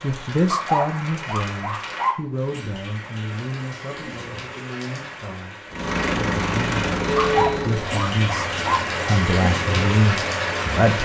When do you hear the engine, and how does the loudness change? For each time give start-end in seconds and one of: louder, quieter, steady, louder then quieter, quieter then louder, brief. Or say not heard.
5.7-11.0 quieter.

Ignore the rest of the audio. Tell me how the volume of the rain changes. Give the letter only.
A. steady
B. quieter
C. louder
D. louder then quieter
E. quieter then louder
C.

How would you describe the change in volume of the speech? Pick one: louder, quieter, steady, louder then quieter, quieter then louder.
quieter then louder.